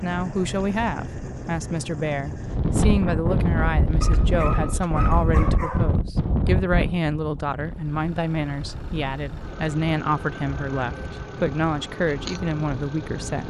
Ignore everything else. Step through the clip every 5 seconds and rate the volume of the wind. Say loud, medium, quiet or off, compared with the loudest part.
loud, loud, medium.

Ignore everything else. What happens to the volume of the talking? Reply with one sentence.
The loudness of the talking stays about the same.